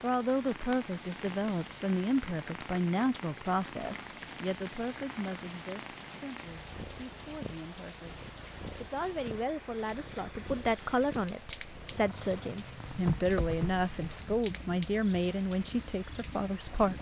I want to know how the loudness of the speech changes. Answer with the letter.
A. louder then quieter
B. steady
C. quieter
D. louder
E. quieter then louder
E.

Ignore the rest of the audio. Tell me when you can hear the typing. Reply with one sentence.
You can hear the typing from 12.8 to 14.2 s.